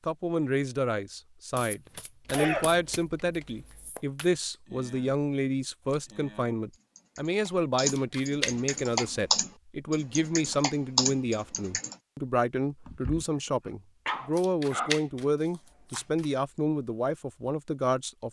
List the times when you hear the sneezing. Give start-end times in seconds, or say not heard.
2.3-2.8, 12.8-15.0.